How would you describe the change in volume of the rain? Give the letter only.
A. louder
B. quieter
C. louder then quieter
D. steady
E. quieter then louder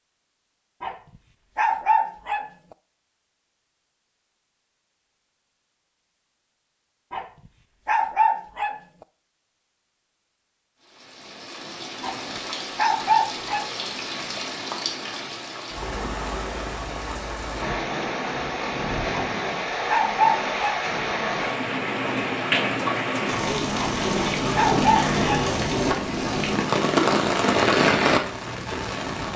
A.